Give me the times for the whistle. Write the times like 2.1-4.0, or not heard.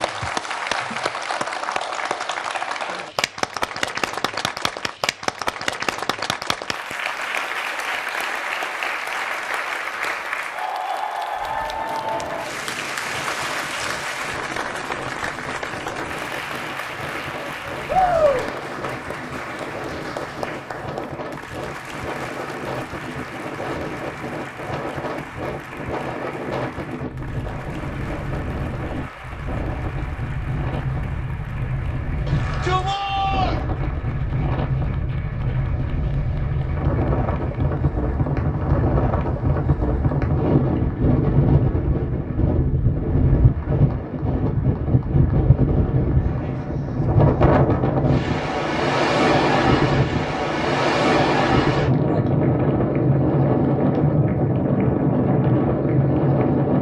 not heard.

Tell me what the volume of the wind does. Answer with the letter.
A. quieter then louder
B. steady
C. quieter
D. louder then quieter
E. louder
E.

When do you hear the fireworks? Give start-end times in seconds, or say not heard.
not heard.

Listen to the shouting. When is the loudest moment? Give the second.
18 s.